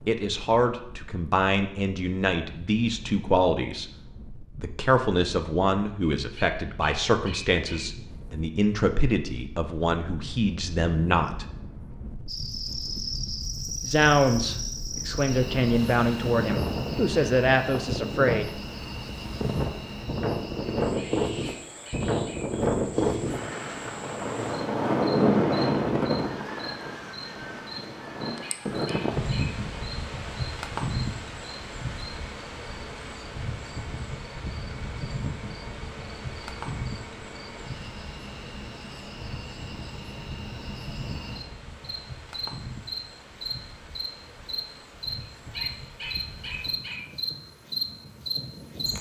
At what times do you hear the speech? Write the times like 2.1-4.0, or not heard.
0.1-3.9, 4.5-11.4, 13.8-18.5.